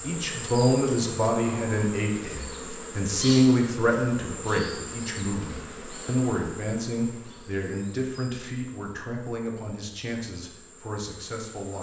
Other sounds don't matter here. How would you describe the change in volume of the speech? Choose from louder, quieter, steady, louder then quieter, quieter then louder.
quieter.